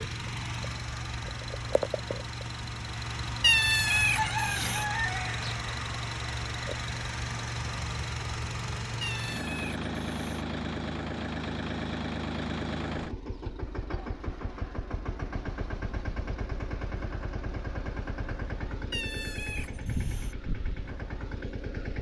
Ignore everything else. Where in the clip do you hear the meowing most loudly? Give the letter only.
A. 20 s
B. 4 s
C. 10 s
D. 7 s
B.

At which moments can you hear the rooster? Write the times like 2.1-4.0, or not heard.
3.9-5.5.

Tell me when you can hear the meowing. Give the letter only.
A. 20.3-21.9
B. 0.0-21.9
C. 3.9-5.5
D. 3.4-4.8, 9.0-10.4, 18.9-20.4
D.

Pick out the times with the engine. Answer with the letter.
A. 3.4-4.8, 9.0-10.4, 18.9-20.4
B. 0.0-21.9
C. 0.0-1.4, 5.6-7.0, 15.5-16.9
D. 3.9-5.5
B.